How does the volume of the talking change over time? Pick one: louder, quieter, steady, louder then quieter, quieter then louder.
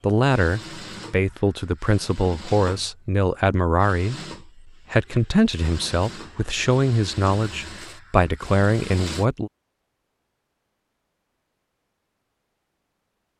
steady.